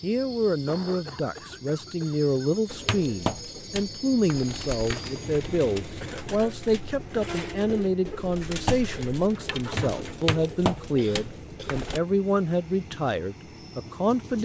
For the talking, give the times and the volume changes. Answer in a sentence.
You can hear the talking from 0.0 to 14.4 s, at a steady volume.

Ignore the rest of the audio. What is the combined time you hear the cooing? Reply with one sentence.
You can hear the cooing for 9 seconds altogether.